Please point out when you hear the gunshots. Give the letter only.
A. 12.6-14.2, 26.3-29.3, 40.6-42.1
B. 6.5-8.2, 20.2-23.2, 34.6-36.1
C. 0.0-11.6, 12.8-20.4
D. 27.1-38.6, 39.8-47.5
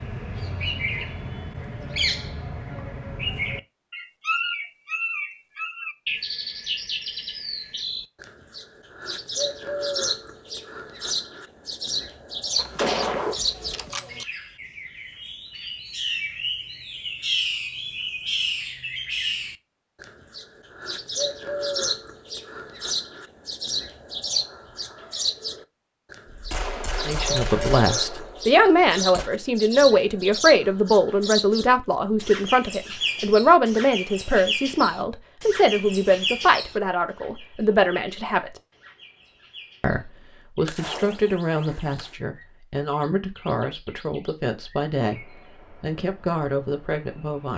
A.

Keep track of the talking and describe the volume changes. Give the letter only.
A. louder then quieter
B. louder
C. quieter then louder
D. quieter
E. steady
D.